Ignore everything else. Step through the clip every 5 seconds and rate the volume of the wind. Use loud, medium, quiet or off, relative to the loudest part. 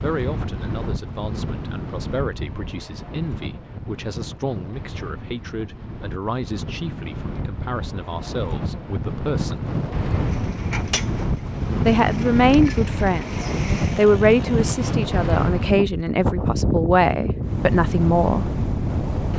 medium, medium, loud, loud.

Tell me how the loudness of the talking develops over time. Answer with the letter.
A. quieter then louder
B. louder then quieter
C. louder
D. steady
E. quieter
C.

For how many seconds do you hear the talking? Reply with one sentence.
You can hear the talking for 16 seconds altogether.